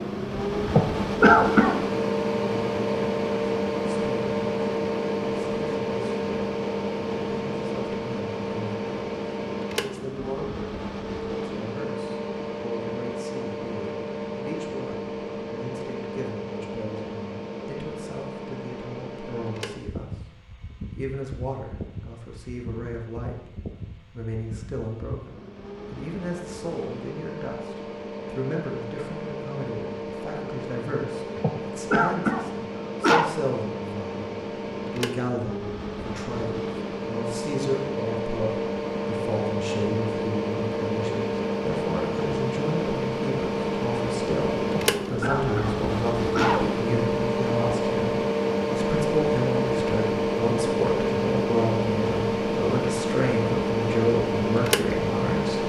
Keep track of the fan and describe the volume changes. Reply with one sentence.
The volume of the fan goes down, then up.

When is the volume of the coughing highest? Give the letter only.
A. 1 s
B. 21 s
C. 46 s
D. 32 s
A.